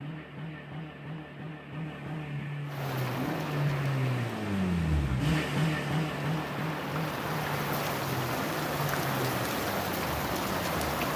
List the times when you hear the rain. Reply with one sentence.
You can hear the rain from 2.6 to 11.1 s.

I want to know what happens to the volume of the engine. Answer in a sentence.
The loudness of the engine goes up, then down.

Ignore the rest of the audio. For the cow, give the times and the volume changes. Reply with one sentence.
The cow can't be heard in this clip.